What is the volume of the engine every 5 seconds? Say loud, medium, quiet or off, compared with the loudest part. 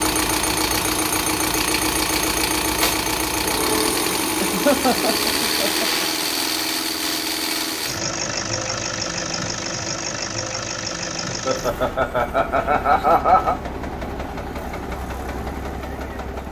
loud, loud, medium, medium.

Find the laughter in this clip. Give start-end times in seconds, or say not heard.
4.4-6.2, 11.3-13.6.